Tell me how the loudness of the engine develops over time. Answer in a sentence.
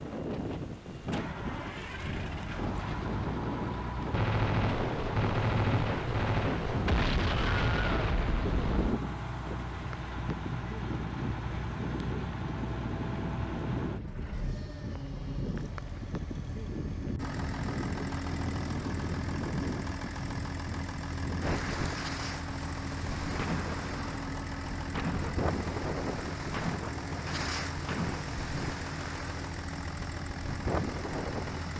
The loudness of the engine stays about the same.